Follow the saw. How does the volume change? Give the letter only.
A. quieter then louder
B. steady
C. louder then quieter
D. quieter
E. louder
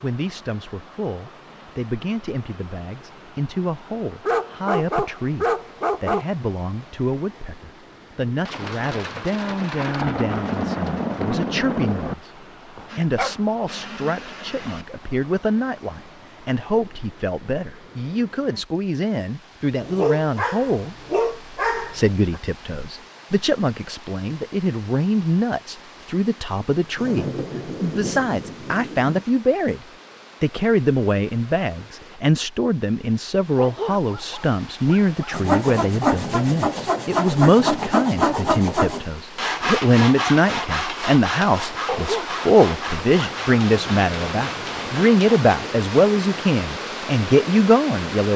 D.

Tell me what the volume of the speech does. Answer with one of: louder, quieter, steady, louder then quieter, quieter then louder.
louder.